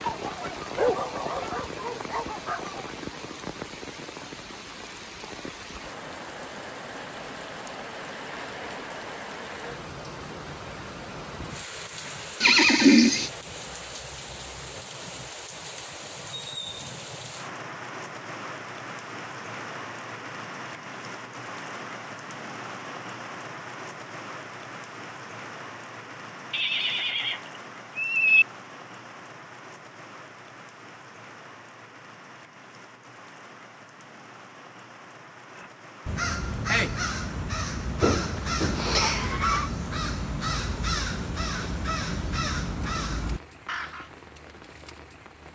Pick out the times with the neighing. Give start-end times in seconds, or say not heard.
12.4-13.3, 26.5-28.4, 38.0-39.7.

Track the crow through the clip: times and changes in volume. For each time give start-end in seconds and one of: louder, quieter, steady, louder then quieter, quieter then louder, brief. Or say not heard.
35.5-44.1 steady.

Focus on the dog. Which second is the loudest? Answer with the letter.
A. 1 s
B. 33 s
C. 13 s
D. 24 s
A.